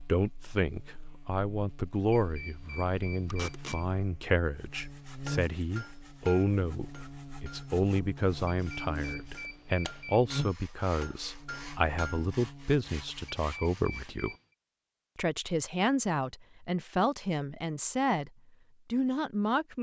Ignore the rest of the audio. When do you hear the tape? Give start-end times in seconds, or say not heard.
3.3-3.8.